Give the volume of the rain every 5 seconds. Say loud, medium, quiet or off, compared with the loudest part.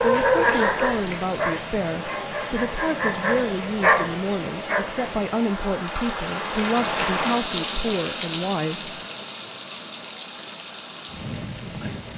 medium, loud, medium.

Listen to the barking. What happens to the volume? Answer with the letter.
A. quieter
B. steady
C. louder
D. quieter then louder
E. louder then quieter
D.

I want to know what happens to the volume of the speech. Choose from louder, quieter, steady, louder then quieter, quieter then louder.
steady.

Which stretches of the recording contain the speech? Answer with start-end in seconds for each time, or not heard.
0.0-8.9.